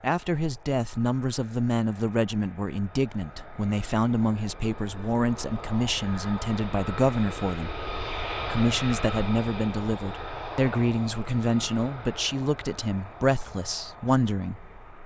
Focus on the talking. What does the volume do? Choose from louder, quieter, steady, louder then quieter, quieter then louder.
steady.